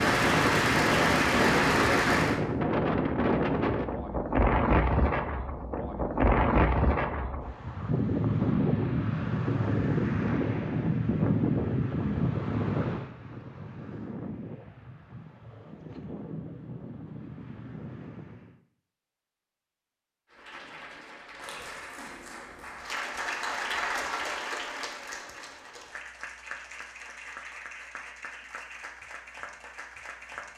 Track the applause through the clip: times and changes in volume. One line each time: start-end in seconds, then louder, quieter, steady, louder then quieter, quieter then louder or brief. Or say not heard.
0.0-2.4 brief
20.3-30.5 louder then quieter.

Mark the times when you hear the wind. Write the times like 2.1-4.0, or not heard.
0.0-18.6.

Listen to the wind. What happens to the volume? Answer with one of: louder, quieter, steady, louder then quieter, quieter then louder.
quieter.